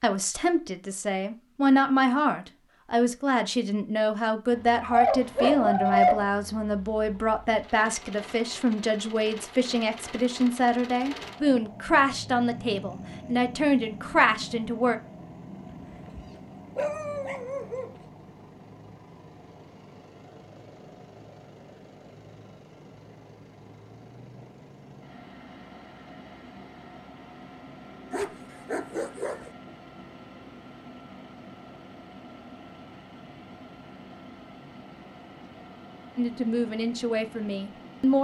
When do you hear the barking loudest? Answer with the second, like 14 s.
6 s.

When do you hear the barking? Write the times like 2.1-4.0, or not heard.
4.8-6.3, 16.1-17.9, 28.1-29.5.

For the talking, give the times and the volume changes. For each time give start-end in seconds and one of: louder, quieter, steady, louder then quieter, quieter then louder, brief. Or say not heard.
0.0-14.9 steady
36.1-38.1 brief.